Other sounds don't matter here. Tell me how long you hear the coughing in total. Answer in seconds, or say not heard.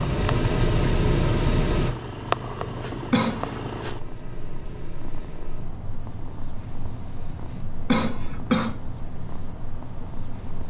2 s.